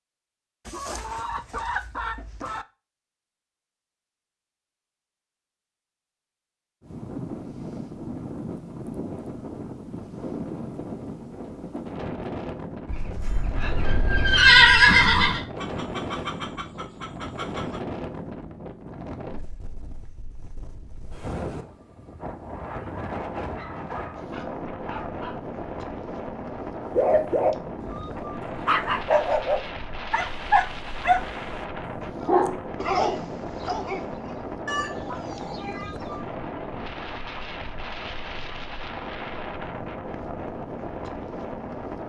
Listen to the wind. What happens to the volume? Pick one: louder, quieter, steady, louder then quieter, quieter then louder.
steady.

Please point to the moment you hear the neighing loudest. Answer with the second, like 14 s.
15 s.